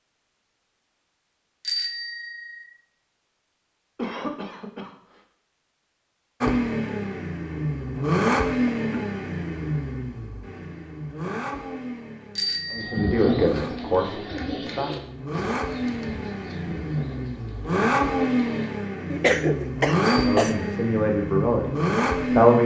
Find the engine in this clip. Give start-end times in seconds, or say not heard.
6.4-22.6.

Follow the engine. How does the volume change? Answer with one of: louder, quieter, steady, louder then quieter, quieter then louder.
quieter then louder.